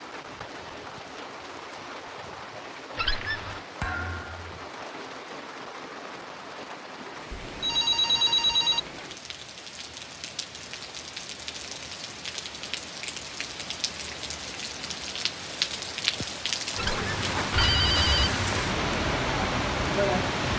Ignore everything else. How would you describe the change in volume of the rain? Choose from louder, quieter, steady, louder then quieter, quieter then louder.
louder.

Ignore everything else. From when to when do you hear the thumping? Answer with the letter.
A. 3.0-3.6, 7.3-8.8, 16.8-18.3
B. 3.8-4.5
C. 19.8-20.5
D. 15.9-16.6
B.